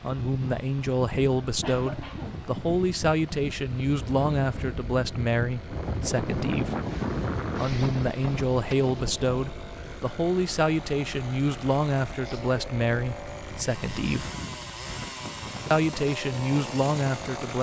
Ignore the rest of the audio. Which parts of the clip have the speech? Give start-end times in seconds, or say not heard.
0.0-6.8, 7.5-14.3, 15.7-17.5.